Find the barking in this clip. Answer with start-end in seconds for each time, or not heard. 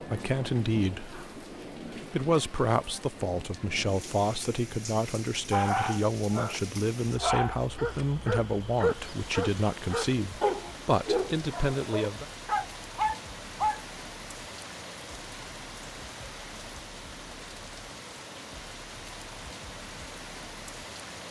5.5-13.8.